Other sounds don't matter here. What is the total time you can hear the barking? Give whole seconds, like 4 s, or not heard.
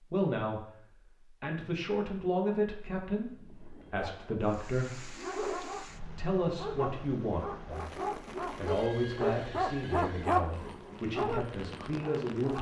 9 s.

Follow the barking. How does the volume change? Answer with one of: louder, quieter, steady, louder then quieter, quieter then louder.
louder then quieter.